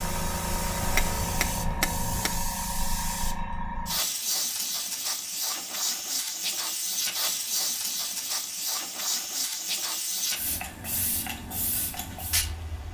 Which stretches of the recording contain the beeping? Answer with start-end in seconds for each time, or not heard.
not heard.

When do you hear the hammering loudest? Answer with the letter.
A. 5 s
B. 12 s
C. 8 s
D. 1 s
D.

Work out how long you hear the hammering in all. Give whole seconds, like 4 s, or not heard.
2 s.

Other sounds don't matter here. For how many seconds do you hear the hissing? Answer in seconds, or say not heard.
13 s.